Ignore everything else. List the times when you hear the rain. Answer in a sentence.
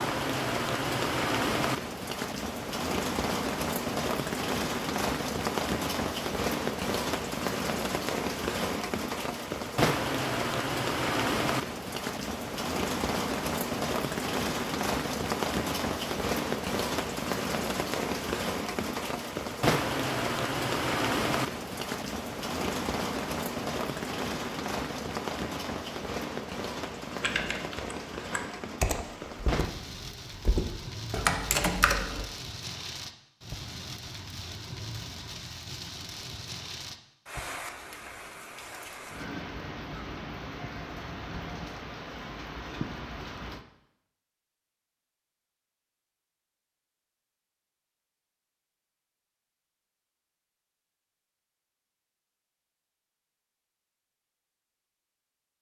You can hear the rain from 0.0 to 43.6 s.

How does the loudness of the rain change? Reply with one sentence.
The loudness of the rain goes down.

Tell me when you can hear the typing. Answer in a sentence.
The typing can be heard from 27.2 to 32.2 s.